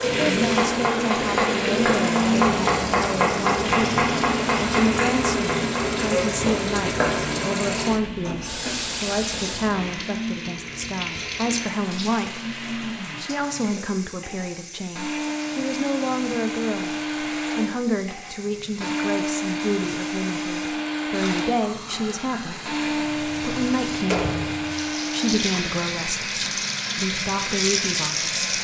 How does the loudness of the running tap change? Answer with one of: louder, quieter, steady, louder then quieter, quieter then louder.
quieter then louder.